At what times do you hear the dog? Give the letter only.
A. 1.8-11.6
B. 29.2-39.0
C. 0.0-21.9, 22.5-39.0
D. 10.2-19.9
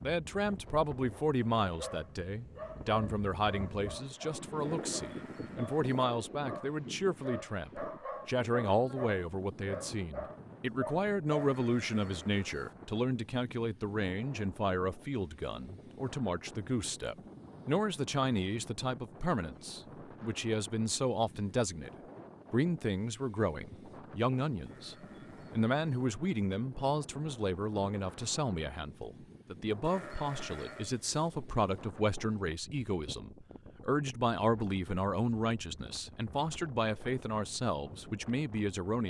A.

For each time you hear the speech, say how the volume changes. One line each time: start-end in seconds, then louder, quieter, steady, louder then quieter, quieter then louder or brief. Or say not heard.
0.0-21.9 steady
22.5-39.0 steady.